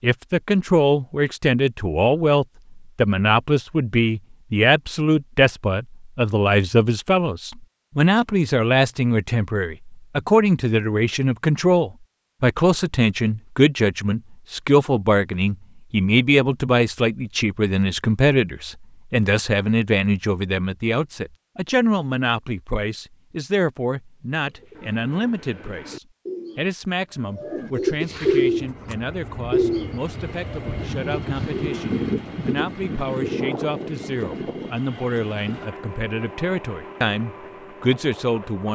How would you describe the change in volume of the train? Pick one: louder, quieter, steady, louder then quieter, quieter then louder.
louder then quieter.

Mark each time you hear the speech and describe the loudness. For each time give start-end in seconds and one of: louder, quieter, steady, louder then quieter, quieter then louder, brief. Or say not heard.
0.0-38.7 quieter.